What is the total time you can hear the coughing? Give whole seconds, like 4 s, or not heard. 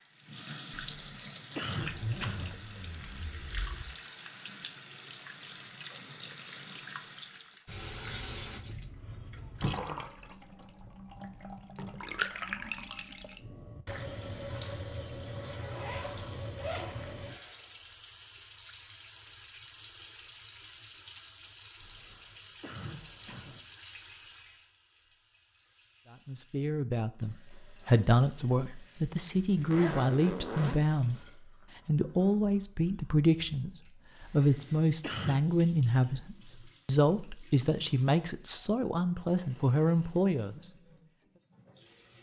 5 s.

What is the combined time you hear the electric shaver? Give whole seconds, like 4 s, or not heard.
not heard.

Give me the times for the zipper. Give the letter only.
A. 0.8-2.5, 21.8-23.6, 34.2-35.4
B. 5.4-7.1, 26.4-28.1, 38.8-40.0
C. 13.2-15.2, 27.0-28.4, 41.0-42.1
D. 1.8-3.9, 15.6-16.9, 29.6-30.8
D.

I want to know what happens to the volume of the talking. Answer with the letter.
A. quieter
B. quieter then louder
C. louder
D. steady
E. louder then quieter
D.